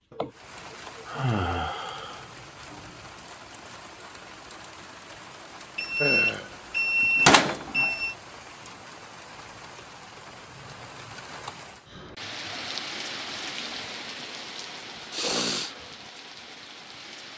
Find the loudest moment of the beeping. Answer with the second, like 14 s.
7 s.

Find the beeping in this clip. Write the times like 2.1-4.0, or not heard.
5.8-8.2.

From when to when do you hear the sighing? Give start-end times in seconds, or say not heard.
0.1-2.3, 6.0-6.5, 15.1-15.8.